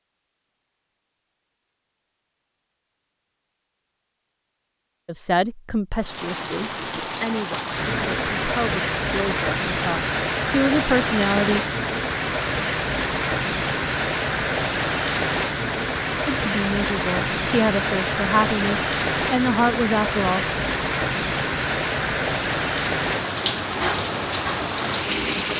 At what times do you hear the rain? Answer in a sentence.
The rain can be heard from 6.0 to 25.5 s.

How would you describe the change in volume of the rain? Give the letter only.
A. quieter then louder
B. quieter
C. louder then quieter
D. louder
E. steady
E.